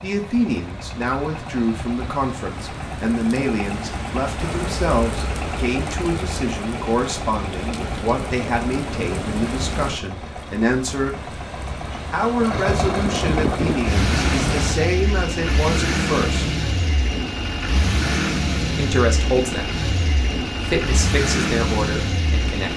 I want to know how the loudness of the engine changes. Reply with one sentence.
The loudness of the engine goes up.